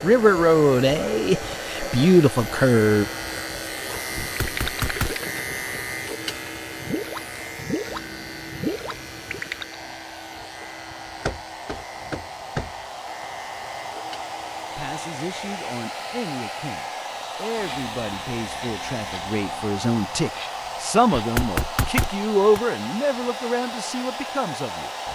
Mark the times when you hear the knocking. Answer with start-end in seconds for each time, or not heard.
4.2-5.2, 11.2-12.7, 21.1-22.6.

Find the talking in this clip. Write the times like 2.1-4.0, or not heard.
0.0-3.0, 14.8-24.9.